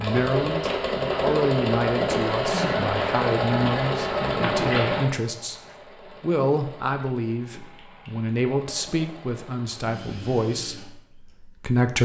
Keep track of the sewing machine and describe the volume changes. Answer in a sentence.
The volume of the sewing machine goes down.